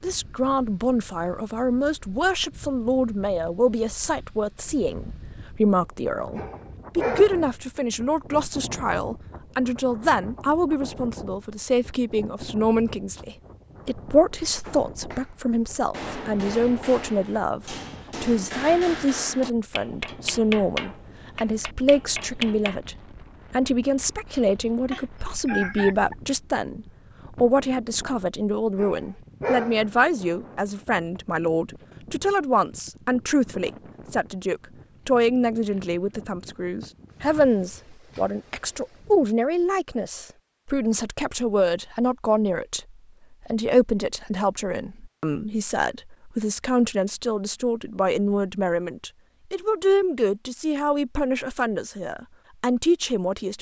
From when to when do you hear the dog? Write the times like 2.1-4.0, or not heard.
6.3-7.5, 28.8-29.9.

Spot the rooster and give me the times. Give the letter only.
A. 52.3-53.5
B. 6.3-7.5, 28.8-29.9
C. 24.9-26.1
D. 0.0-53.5
C.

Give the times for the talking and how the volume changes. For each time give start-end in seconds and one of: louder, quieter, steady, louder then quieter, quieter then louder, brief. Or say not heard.
0.0-53.5 steady.